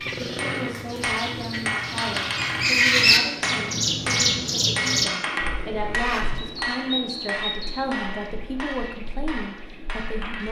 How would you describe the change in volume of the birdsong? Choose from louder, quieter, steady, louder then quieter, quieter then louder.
louder then quieter.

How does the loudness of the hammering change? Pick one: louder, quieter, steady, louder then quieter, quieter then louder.
quieter.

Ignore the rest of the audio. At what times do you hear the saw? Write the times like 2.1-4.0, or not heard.
0.1-0.8, 5.3-6.0.